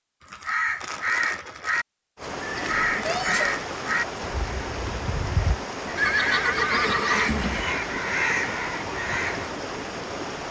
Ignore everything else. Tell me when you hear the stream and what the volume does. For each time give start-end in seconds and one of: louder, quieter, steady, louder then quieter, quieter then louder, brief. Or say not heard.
2.1-10.4 steady.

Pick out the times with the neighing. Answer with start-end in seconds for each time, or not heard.
2.4-3.6, 6.0-7.8.